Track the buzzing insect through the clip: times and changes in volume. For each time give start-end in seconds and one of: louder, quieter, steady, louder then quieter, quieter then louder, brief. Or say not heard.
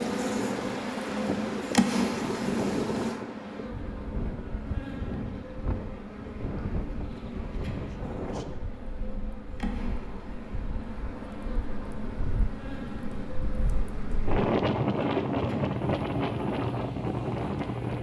0.0-17.9 quieter.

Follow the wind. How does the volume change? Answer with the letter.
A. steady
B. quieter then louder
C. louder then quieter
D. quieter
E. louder
B.